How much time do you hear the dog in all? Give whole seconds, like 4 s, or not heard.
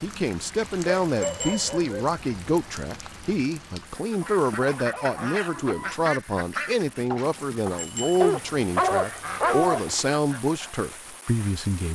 4 s.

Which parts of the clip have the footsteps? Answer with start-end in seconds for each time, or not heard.
not heard.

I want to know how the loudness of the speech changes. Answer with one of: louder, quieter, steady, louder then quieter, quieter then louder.
steady.